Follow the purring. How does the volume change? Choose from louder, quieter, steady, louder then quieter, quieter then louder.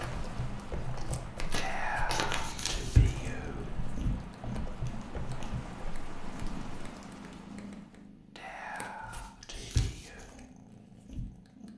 quieter.